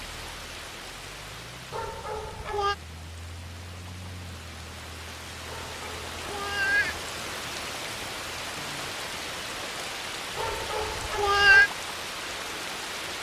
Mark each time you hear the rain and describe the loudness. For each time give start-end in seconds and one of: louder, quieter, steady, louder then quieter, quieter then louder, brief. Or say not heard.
0.0-13.1 louder.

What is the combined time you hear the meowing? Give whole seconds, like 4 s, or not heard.
4 s.